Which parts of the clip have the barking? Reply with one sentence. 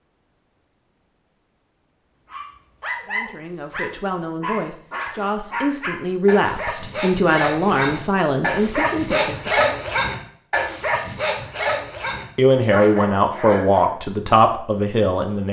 You can hear the barking from 2.2 to 13.9 s.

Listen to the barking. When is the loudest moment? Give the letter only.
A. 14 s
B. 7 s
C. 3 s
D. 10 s
D.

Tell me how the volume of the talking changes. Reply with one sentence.
The loudness of the talking goes up.